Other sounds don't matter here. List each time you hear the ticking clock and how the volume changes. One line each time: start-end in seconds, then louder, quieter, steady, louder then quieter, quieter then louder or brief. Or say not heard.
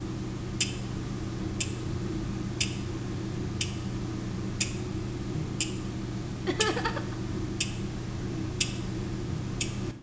0.0-9.9 steady.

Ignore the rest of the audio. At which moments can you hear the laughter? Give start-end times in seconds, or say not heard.
6.5-7.2.